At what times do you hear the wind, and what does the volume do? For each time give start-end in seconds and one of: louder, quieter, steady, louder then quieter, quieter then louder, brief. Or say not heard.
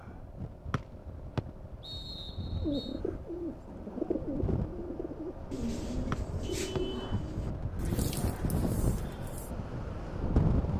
0.0-10.7 louder.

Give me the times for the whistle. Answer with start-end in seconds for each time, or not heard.
0.7-3.0, 6.1-6.8.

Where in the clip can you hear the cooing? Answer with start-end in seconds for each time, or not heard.
2.6-9.5.